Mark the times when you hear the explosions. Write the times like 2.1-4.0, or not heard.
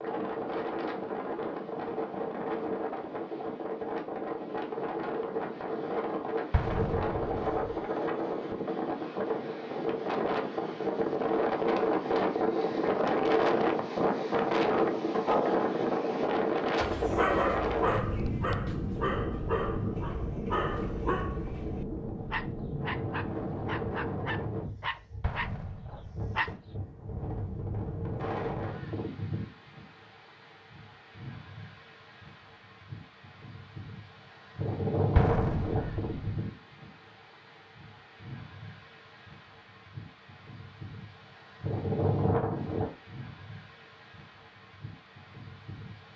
6.5-7.8, 25.2-26.4, 35.1-36.4.